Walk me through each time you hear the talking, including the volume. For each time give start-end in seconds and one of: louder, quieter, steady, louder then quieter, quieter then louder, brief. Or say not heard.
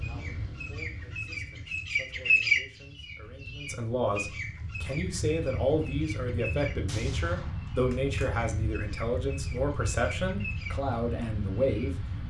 0.0-12.2 louder.